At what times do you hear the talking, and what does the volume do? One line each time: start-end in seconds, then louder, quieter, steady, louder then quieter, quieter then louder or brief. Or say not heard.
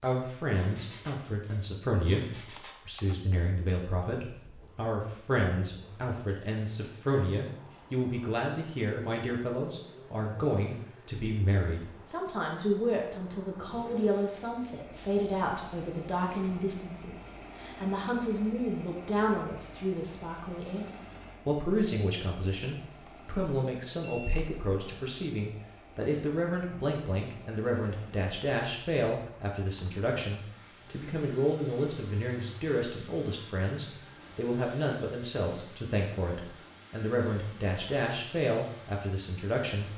0.0-39.9 steady.